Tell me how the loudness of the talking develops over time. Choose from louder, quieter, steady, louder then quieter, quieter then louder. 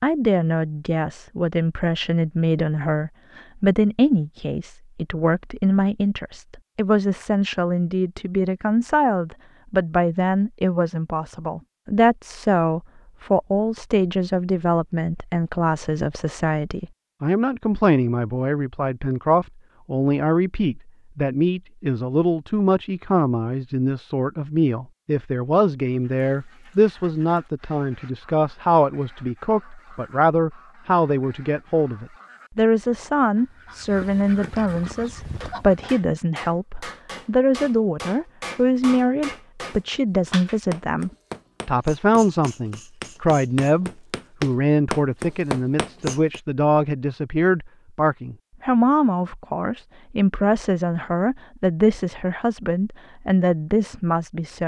steady.